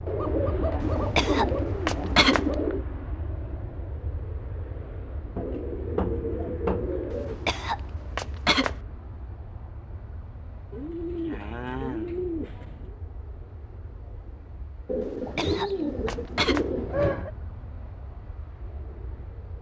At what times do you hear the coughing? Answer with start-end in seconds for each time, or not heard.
0.8-2.5, 7.1-8.8, 15.0-16.6.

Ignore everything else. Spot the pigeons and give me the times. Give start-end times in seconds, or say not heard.
0.1-2.9, 5.3-7.3, 10.7-12.9, 14.8-17.3.